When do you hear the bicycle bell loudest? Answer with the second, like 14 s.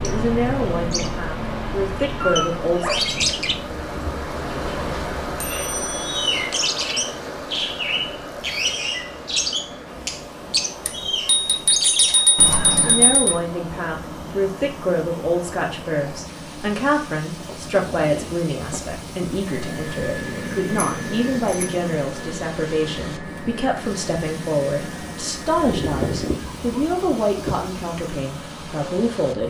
12 s.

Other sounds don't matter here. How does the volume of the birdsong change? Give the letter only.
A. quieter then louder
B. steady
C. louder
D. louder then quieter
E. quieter
E.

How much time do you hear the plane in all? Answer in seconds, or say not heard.
9 s.